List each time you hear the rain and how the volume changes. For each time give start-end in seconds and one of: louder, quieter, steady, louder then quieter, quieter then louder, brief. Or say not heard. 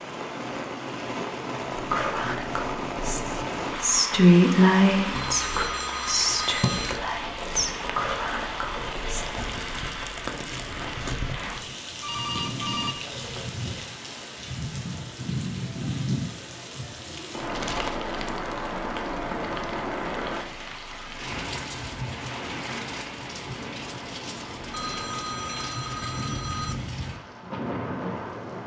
0.0-28.6 steady.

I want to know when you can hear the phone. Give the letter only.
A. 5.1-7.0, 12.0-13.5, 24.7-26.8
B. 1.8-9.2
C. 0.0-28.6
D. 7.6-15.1
A.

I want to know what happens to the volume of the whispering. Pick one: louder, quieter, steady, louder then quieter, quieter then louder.
louder then quieter.